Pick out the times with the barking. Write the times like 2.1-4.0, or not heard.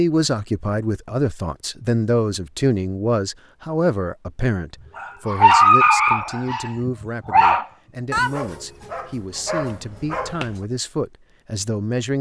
5.0-10.7.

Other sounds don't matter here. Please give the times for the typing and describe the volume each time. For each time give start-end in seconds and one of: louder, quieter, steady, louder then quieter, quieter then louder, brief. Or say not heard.
not heard.